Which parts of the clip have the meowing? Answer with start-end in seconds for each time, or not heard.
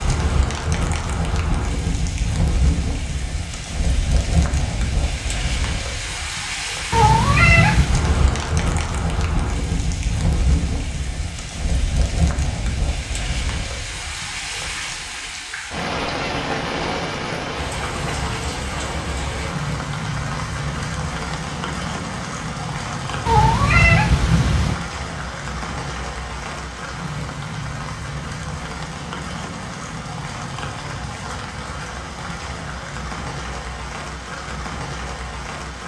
6.9-8.0, 23.2-24.8.